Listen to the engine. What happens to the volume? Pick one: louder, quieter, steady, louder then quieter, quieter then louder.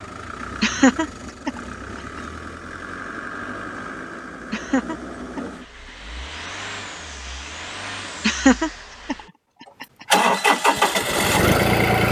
louder.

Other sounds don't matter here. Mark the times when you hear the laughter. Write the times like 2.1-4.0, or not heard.
0.6-1.5, 4.5-5.4, 8.2-9.2.